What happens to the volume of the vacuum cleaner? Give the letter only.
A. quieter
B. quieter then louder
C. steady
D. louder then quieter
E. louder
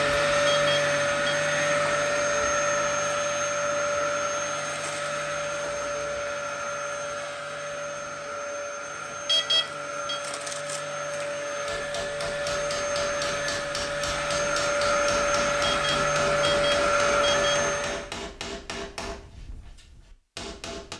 B.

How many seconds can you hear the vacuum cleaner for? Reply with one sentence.
You can hear the vacuum cleaner for 18 seconds altogether.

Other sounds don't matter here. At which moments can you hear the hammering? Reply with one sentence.
You can hear the hammering from 11.7 to 20.9 s.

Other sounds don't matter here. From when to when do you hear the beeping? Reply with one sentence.
The beeping can be heard from 0.5 to 1.4 s, from 9.2 to 10.2 s and from 15.7 to 17.6 s.